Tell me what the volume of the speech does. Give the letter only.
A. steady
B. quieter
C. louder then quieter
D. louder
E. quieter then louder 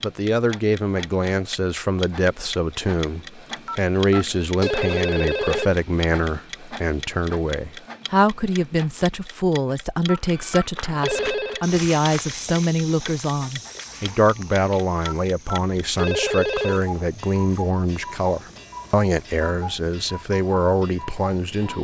A.